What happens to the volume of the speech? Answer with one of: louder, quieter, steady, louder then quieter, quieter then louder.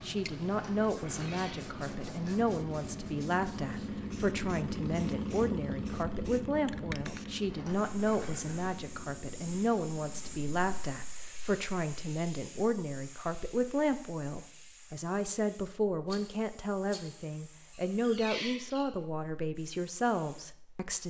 steady.